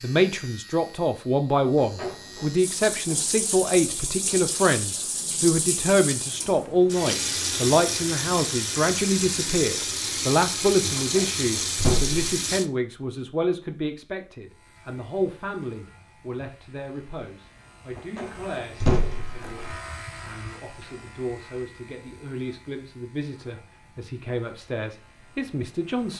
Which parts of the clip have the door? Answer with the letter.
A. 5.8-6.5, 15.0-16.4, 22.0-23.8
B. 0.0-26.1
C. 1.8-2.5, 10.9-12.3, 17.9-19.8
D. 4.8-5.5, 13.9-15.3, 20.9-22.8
C.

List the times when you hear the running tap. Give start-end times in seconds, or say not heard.
2.5-12.7.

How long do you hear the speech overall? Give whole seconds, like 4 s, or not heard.
26 s.